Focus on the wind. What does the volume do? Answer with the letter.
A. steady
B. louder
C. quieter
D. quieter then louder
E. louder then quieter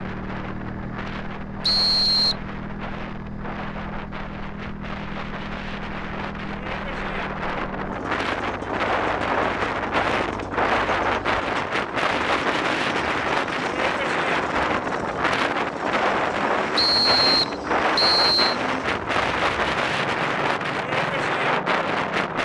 B.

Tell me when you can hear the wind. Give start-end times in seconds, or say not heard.
0.0-22.4.